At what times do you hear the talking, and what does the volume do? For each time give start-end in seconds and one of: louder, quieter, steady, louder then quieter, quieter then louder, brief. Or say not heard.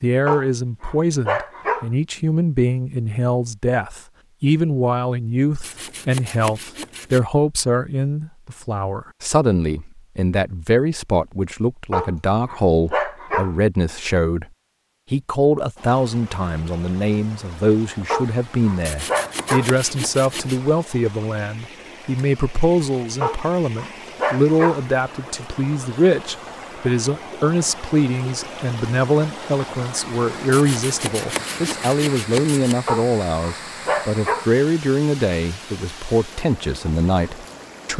0.0-14.4 steady
15.1-37.9 steady.